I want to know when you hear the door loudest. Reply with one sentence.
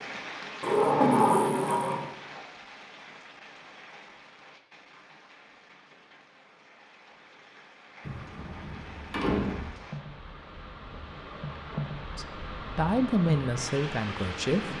The loudest moment of the door is at 1 second.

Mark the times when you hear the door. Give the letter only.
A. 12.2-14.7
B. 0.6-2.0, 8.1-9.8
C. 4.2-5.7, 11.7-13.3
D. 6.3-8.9
B.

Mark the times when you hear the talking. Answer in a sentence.
You can hear the talking from 12.2 to 14.7 s.